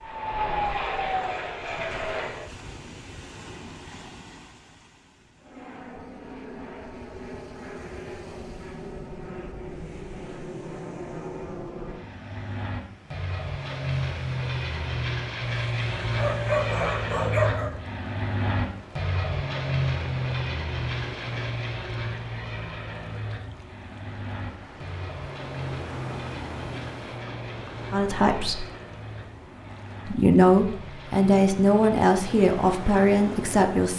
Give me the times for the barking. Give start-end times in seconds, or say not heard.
16.1-17.7.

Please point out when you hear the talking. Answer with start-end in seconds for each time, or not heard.
27.9-28.6, 30.1-33.9.